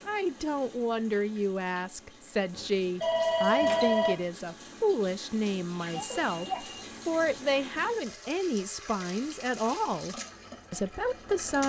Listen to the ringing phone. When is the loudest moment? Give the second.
4 s.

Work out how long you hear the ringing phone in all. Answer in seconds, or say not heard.
3 s.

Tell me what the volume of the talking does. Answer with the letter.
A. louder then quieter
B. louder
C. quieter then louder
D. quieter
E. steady
E.